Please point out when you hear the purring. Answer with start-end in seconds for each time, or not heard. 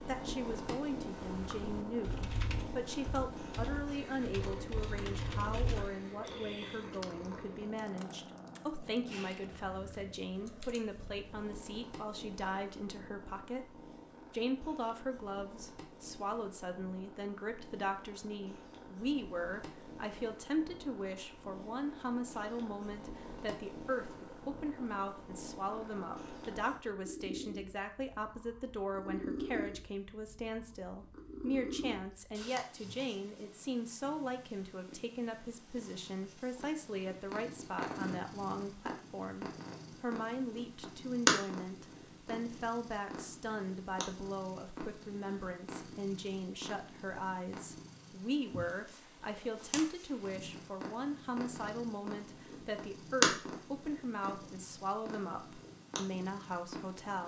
0.0-57.2.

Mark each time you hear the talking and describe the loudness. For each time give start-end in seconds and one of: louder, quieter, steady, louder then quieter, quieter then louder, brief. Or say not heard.
0.1-57.2 steady.